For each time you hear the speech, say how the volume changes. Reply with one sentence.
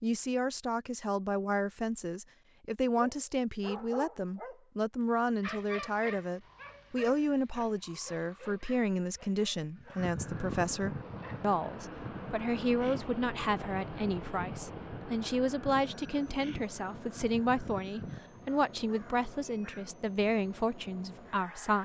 The speech can be heard from 0.0 to 21.8 s, at a steady volume.